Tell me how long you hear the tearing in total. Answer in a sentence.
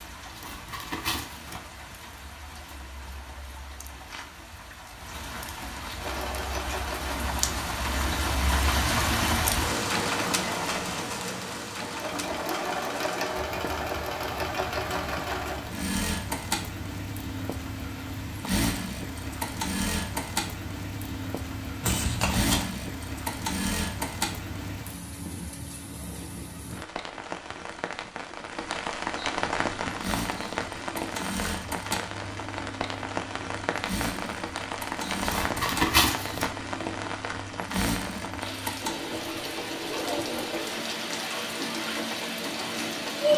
The tearing can be heard for 3 seconds in total.